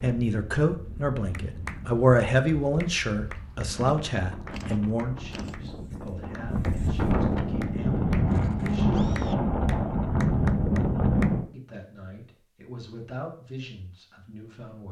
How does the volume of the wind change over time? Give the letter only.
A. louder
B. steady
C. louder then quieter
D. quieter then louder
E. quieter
A.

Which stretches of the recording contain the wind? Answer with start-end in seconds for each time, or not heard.
0.0-11.4.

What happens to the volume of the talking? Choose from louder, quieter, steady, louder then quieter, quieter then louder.
quieter.